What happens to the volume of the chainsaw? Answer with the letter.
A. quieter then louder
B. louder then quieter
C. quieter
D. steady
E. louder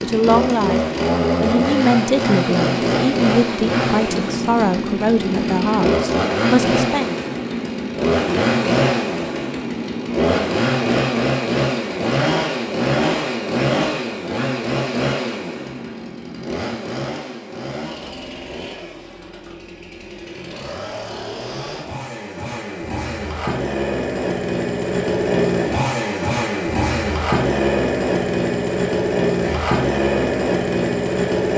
A.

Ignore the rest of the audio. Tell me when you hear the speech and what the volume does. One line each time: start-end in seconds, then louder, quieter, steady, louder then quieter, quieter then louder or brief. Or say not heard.
0.0-7.1 steady.